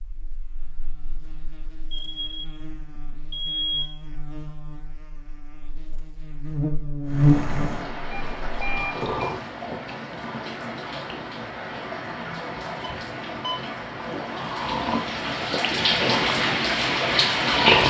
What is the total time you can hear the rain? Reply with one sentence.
You can hear the rain for 11 seconds altogether.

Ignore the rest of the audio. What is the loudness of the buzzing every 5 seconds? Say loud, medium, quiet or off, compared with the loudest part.
quiet, loud, off, off.